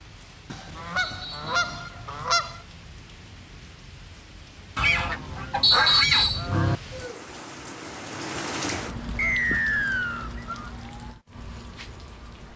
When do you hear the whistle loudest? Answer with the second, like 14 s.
6 s.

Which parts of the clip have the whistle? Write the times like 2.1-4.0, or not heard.
0.9-1.6, 5.6-6.5, 9.2-10.3.